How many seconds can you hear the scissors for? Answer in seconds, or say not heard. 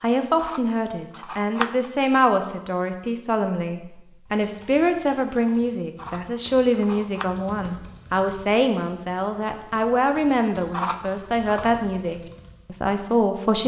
4 s.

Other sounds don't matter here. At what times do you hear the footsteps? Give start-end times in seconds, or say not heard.
not heard.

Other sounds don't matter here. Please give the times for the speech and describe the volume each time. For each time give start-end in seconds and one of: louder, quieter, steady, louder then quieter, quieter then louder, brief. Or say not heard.
0.0-13.6 steady.